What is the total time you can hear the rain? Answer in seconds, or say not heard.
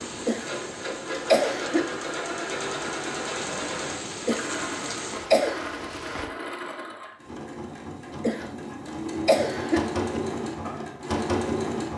6 s.